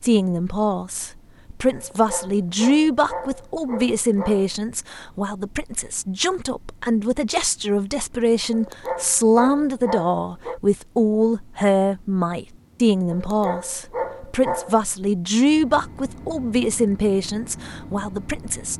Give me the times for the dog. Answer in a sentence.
You can hear the dog from 1.8 to 4.5 s, from 8.5 to 10.6 s and from 13.1 to 14.8 s.